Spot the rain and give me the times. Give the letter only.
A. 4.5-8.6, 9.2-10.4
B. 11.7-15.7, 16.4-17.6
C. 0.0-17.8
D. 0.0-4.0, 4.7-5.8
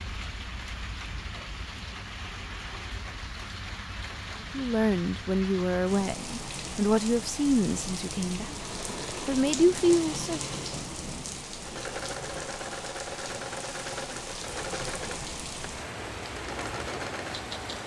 C.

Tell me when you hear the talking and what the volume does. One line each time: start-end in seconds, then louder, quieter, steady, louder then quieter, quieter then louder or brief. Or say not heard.
4.5-8.6 steady
9.2-10.4 brief.